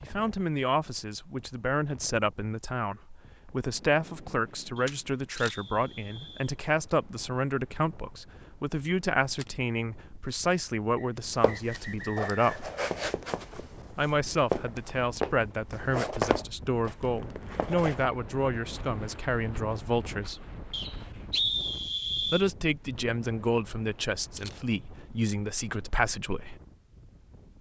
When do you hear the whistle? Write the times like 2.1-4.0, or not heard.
4.8-6.5, 10.9-12.4, 20.7-22.4.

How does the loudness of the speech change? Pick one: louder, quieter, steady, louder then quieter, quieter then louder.
steady.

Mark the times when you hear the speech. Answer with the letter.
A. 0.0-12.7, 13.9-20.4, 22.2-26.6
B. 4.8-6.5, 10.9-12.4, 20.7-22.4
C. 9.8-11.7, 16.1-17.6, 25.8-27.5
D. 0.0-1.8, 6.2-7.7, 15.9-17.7
A.